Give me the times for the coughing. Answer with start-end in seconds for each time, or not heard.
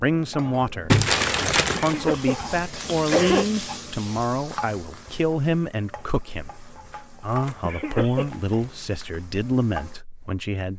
1.8-3.5, 7.7-8.3.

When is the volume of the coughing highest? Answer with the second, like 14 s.
3 s.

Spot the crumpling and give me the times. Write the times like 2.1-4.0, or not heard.
0.9-2.0, 7.2-9.2.